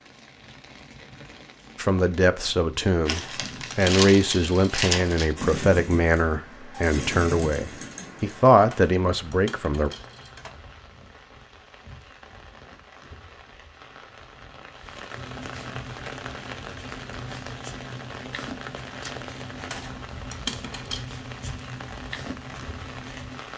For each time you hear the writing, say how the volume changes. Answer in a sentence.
You can hear the writing from 15.1 to 23.4 s, at a steady volume.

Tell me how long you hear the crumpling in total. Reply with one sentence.
The crumpling can be heard for 2 seconds in total.